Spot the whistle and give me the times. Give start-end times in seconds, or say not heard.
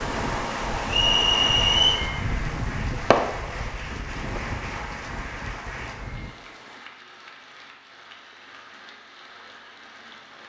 0.8-2.0.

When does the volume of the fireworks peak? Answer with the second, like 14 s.
3 s.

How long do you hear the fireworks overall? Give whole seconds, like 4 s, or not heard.
7 s.